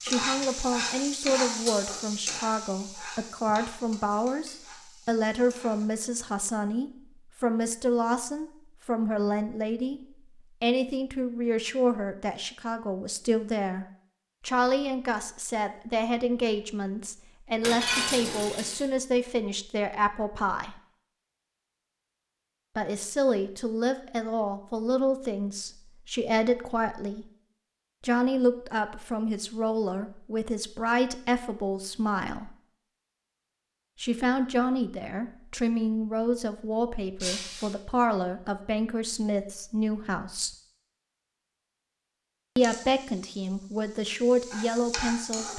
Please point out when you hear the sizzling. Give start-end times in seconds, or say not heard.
0.0-5.9, 42.6-45.5.